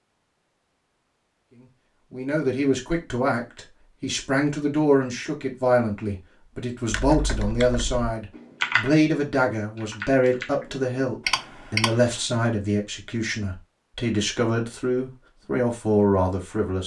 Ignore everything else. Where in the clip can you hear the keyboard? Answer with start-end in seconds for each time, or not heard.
6.9-12.2.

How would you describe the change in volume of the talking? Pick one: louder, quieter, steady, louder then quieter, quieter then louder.
steady.